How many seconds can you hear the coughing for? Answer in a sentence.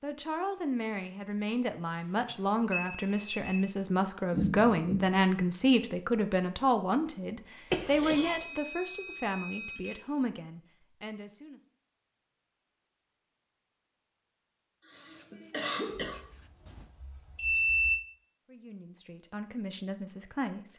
The coughing can be heard for 3 seconds in total.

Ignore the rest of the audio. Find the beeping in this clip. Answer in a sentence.
The beeping can be heard from 1.9 to 3.6 s, from 8.1 to 10.0 s and from 16.1 to 17.9 s.